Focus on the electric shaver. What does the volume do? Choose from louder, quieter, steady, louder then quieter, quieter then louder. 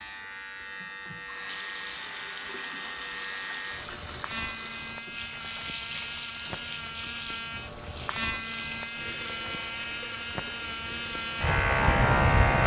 louder.